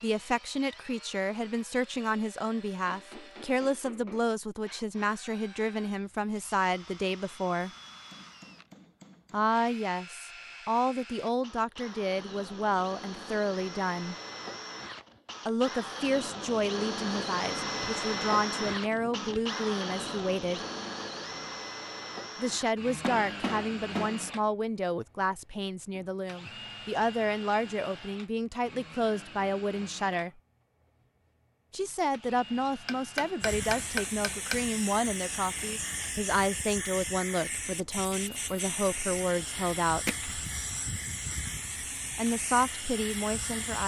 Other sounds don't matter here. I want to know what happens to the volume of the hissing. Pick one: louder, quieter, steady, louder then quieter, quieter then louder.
steady.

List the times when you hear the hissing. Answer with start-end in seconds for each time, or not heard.
33.4-43.8.